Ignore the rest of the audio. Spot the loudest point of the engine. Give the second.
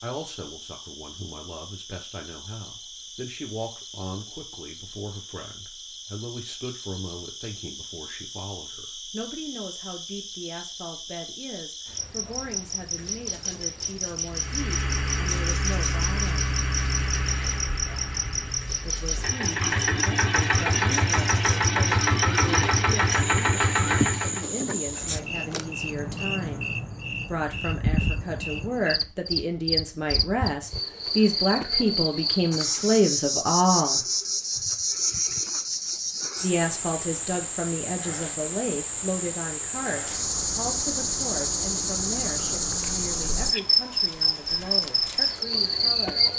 22 s.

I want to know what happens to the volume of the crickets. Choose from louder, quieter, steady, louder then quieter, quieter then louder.
louder.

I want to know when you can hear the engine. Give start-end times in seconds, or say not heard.
14.2-24.5.